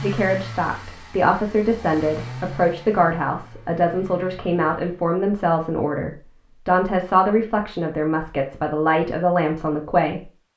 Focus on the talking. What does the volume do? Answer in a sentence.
The loudness of the talking stays about the same.